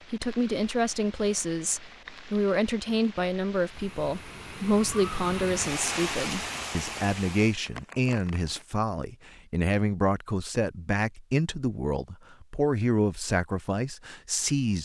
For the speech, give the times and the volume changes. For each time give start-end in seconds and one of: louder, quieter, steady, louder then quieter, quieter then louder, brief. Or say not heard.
0.1-14.8 steady.